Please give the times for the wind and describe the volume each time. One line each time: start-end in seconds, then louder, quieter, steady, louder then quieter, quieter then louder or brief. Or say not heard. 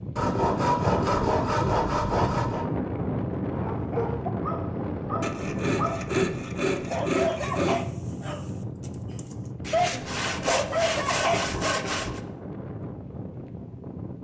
0.0-14.1 quieter.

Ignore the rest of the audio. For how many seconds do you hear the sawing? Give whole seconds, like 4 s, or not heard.
8 s.